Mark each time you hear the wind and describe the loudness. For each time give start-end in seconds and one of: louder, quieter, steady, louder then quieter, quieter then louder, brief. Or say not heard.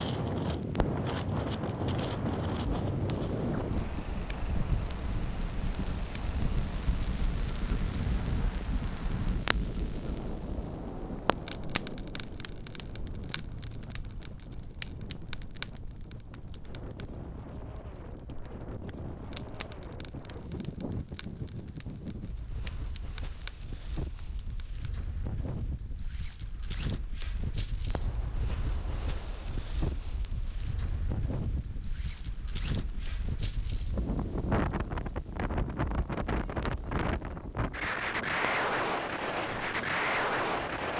0.0-40.9 quieter then louder.